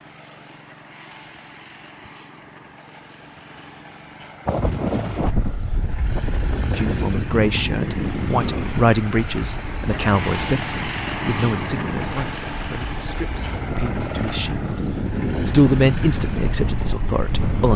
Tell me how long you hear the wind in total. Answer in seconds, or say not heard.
13 s.